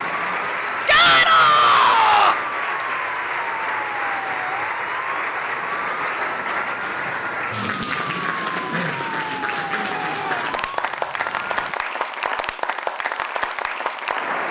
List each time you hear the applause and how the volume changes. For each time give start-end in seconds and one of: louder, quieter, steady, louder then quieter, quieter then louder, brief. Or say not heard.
0.0-14.4 steady.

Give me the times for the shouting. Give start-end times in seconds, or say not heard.
0.8-2.4, 9.8-10.6.